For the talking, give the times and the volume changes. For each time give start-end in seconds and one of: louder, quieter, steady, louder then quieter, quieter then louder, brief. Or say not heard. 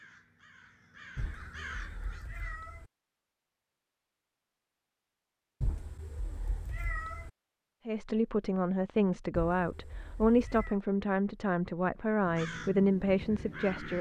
7.8-13.9 steady.